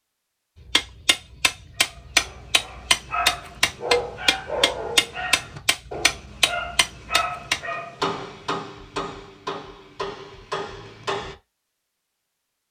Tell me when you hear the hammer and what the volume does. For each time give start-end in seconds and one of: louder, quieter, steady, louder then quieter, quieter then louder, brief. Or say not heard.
0.7-11.3 quieter.